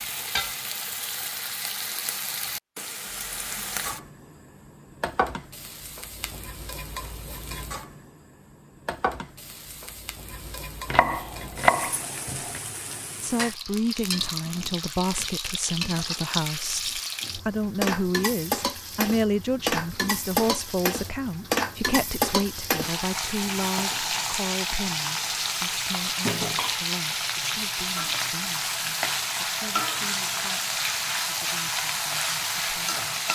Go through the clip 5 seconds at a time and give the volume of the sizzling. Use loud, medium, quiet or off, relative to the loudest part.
medium, medium, medium, loud, loud, loud, loud.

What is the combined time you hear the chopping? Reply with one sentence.
The chopping can be heard for 2 seconds in total.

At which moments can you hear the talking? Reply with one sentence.
The talking can be heard from 13.2 to 33.0 s.